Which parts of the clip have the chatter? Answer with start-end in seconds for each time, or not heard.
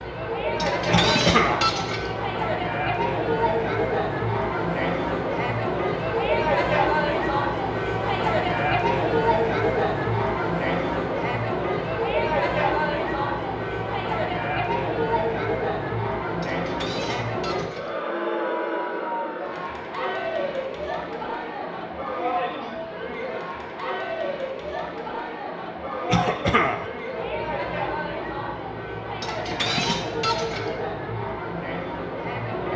0.0-32.7.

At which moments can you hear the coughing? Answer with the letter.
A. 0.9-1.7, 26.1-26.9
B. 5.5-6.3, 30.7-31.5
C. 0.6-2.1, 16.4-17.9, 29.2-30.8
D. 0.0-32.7
A.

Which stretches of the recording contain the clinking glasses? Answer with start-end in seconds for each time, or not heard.
0.6-2.1, 16.4-17.9, 29.2-30.8.